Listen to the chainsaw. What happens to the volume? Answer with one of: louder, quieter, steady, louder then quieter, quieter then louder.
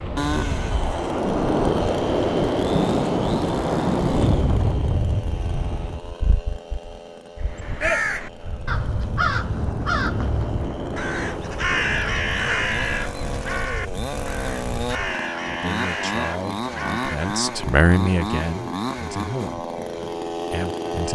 quieter then louder.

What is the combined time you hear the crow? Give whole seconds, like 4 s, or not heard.
10 s.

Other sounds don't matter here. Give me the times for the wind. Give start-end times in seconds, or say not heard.
0.0-15.2.